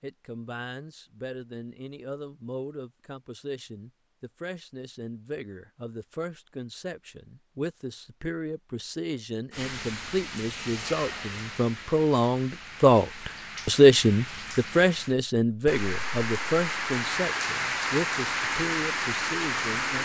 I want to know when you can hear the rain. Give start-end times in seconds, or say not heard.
9.5-20.0.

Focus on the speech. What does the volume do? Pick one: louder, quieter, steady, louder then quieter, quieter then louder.
louder then quieter.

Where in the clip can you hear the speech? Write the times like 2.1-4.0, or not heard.
0.0-20.0.